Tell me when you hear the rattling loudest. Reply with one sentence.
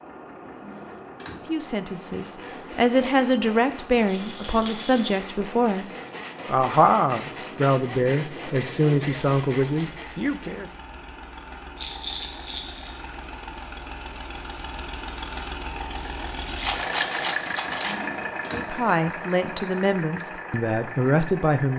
The volume of the rattling peaks at 17 seconds.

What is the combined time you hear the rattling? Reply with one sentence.
You can hear the rattling for 4 seconds altogether.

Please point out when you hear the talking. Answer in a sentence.
You can hear the talking from 1.4 to 10.7 s and from 18.5 to 21.7 s.